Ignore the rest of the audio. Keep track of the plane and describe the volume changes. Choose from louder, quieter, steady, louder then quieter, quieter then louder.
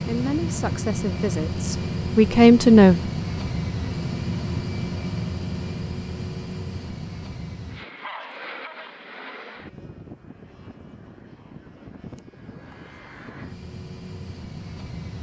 quieter.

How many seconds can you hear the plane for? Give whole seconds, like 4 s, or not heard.
15 s.